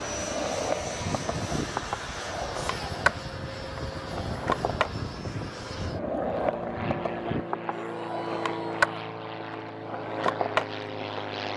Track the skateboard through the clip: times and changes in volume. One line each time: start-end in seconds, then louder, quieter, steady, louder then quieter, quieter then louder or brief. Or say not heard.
0.0-11.3 steady.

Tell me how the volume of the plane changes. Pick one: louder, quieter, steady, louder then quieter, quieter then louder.
steady.